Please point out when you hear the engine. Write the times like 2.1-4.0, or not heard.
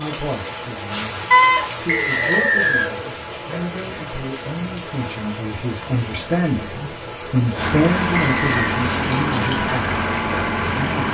7.5-11.0.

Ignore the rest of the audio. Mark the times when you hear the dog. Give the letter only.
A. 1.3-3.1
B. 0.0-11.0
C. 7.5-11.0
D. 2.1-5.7
A.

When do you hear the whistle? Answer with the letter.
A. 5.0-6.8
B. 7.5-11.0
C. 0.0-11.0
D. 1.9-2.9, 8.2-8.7
D.